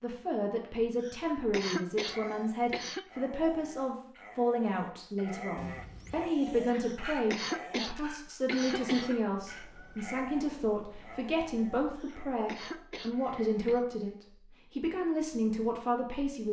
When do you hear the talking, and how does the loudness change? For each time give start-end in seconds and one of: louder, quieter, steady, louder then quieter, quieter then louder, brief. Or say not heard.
0.0-16.4 steady.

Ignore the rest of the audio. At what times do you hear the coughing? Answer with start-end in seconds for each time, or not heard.
1.0-3.1, 6.8-9.2, 11.9-13.8.